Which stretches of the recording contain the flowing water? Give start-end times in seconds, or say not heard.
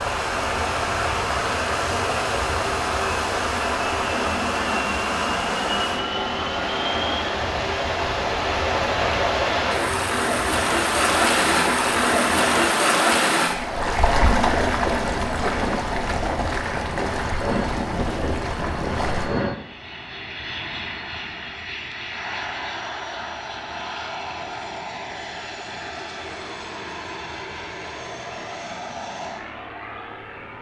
0.0-19.3.